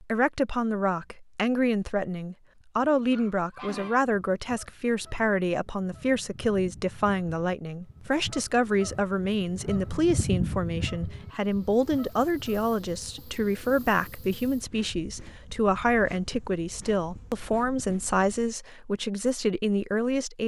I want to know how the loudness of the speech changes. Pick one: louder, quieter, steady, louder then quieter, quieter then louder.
steady.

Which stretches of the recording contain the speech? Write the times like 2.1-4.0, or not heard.
0.0-20.4.